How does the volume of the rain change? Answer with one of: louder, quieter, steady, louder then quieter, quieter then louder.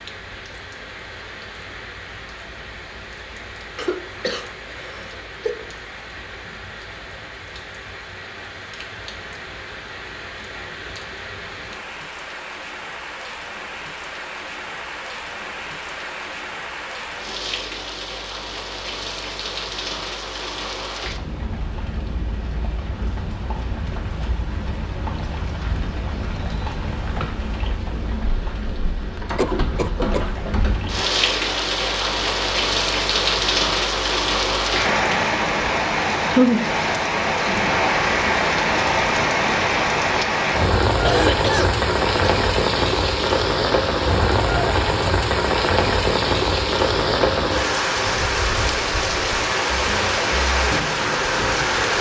louder.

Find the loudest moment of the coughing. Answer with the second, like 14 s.
41 s.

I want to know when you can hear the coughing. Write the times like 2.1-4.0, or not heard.
3.8-5.7, 29.1-30.3, 41.0-42.3.